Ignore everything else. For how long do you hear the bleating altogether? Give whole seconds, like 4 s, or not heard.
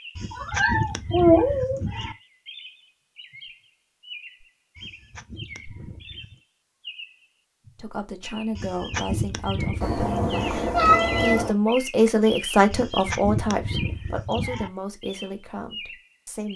8 s.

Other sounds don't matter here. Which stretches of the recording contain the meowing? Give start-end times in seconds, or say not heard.
0.3-1.8, 9.8-11.6.